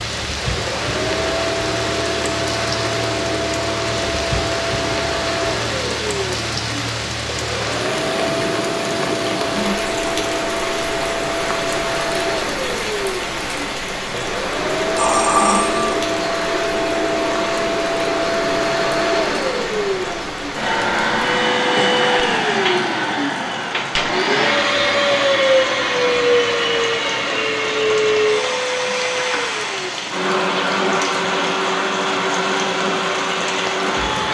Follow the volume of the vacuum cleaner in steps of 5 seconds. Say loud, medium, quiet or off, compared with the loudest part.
medium, medium, medium, loud, loud, loud, loud.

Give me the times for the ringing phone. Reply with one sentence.
The ringing phone can be heard from 14.9 to 16.1 s.